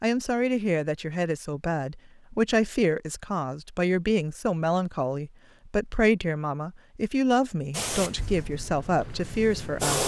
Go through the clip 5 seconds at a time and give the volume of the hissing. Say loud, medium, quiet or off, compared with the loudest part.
off, loud.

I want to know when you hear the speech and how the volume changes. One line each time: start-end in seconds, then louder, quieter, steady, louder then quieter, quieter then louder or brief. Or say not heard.
0.0-10.0 steady.